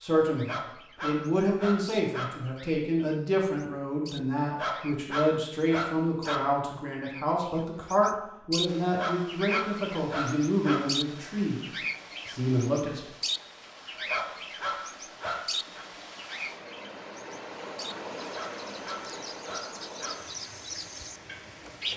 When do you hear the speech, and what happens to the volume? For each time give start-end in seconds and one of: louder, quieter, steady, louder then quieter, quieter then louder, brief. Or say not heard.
0.0-13.1 steady.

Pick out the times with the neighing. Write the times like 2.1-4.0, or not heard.
not heard.